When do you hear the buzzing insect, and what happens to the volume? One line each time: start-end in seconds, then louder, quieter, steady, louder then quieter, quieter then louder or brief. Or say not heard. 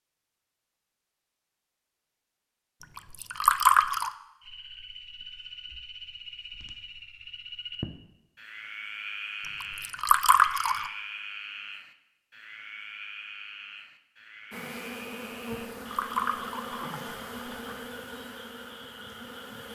14.5-19.7 quieter.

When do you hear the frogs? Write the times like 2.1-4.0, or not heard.
4.4-19.7.